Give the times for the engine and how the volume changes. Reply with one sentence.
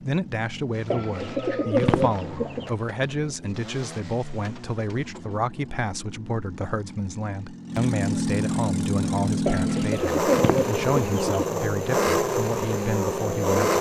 The engine can be heard from 0.0 to 13.7 s, getting louder.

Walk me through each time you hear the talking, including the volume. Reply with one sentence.
The talking can be heard from 0.0 to 13.7 s, at a steady volume.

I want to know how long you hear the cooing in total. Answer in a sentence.
You can hear the cooing for 4 seconds altogether.